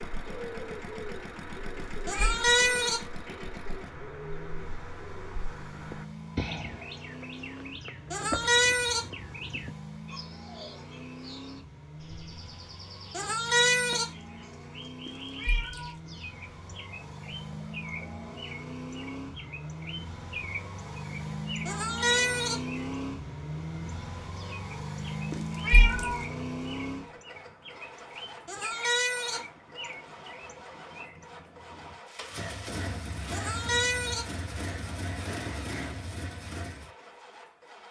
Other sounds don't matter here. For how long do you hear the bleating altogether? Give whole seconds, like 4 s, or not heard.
6 s.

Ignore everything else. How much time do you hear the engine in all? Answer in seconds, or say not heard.
38 s.